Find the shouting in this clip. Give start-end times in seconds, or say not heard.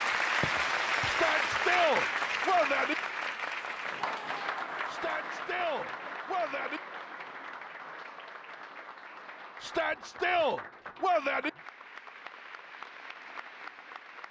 1.1-3.0, 4.8-6.8, 9.6-11.5.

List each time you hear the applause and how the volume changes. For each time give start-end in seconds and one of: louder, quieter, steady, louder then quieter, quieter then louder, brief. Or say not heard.
0.0-14.2 quieter.